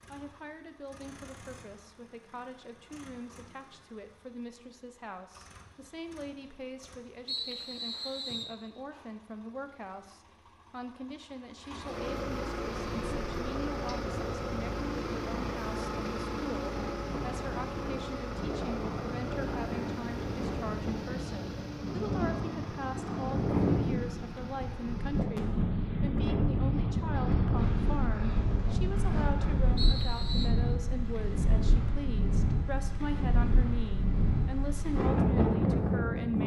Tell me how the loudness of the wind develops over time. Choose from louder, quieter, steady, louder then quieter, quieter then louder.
louder.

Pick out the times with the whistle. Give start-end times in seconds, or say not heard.
7.2-8.6, 29.8-30.5.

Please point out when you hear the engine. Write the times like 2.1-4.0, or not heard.
0.0-25.2.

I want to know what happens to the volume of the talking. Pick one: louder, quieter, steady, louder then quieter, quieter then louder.
louder.